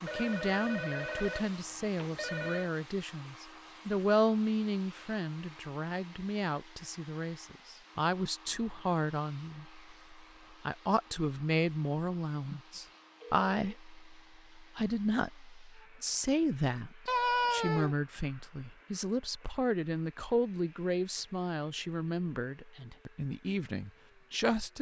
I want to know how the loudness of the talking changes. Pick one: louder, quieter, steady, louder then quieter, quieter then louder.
steady.